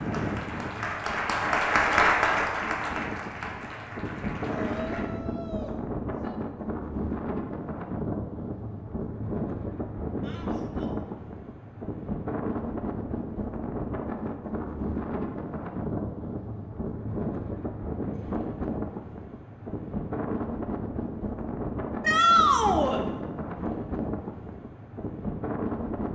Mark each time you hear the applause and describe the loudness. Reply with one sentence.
You can hear the applause from 0.0 to 5.1 s, getting louder then quieter.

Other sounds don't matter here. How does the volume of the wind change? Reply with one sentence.
The loudness of the wind stays about the same.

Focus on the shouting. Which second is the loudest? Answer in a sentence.
The loudest moment of the shouting is at 22 seconds.